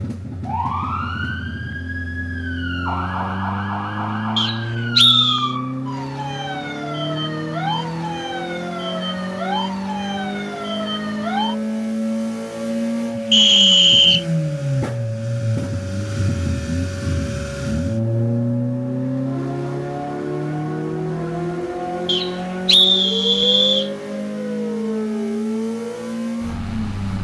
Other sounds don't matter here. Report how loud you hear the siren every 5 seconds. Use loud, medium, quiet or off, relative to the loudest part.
loud, loud, loud, medium, loud, loud.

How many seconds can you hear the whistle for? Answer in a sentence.
You can hear the whistle for 4 seconds altogether.